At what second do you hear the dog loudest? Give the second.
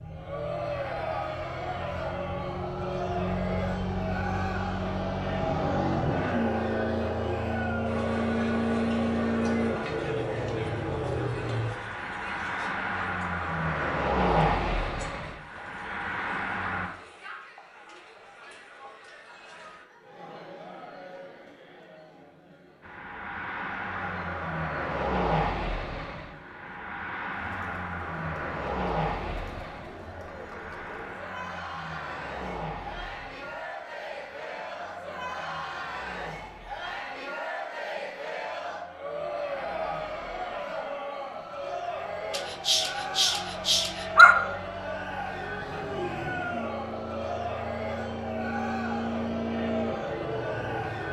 44 s.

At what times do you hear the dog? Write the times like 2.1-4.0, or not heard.
42.3-44.4.